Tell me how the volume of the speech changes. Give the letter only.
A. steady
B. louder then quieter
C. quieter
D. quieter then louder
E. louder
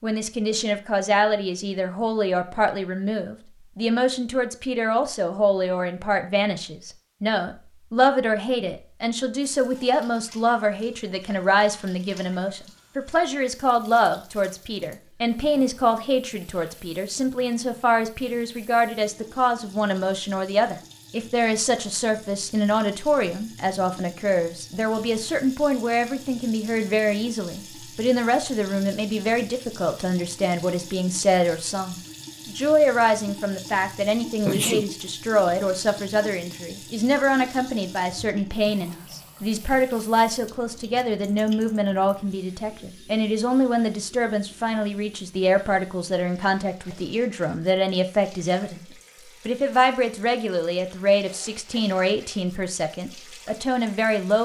A.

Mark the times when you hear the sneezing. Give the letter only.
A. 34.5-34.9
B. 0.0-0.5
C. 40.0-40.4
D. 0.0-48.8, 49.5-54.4
A.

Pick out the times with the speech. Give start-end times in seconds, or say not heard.
0.0-48.8, 49.5-54.4.